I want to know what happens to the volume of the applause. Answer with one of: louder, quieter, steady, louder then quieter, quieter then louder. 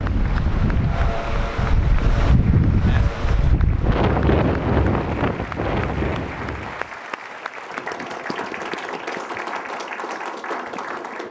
louder.